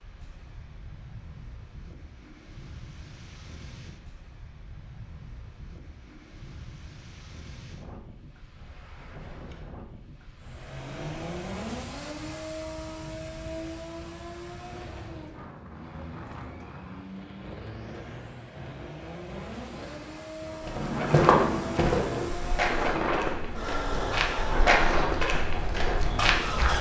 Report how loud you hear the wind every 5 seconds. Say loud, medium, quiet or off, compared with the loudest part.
quiet, quiet, quiet, quiet, loud, loud.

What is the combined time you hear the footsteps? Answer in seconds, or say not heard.
6 s.